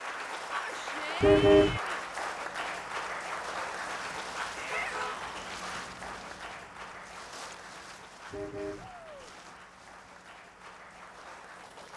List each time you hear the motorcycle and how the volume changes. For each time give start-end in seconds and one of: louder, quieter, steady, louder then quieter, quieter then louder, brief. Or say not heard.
not heard.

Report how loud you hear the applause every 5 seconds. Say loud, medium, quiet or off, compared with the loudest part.
loud, medium, quiet.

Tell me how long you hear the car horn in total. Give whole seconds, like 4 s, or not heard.
2 s.